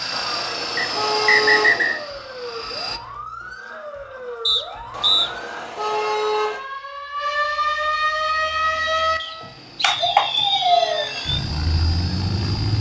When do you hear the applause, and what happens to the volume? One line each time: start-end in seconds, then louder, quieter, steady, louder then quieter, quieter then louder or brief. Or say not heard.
not heard.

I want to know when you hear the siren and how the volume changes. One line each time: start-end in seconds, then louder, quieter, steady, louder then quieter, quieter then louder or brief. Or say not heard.
0.0-12.7 louder.